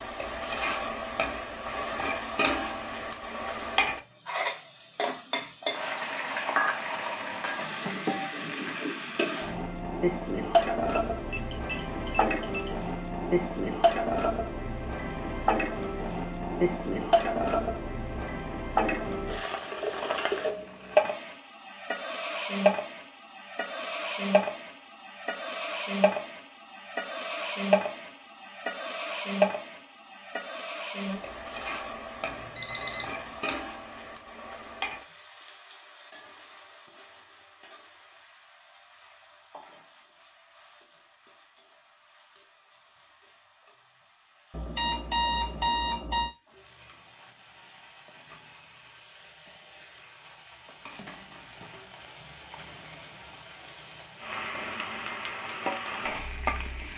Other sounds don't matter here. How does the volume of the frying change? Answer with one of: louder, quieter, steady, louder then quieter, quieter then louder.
quieter then louder.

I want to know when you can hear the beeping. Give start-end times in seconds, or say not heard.
10.9-12.8, 32.2-33.6, 44.5-46.3.